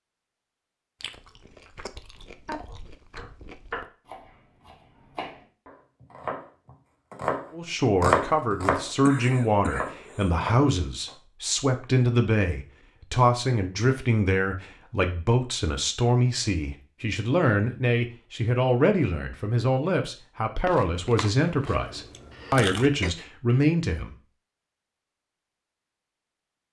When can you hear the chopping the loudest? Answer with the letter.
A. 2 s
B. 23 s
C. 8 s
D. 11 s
C.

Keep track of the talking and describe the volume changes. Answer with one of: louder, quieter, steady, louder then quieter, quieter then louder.
steady.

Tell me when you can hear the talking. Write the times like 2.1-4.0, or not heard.
7.5-24.1.